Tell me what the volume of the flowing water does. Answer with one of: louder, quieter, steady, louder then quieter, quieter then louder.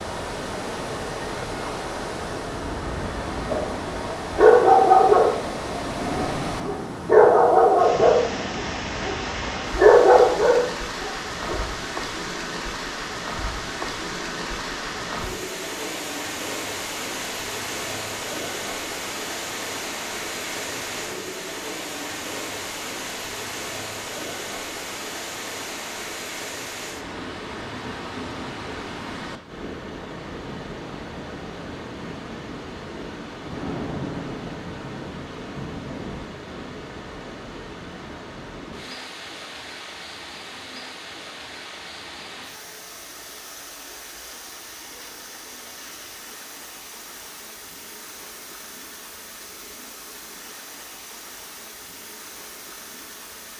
quieter.